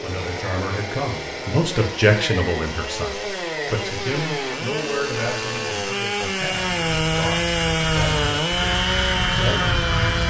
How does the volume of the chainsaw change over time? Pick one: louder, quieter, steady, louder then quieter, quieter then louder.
louder.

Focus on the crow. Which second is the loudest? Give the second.
10 s.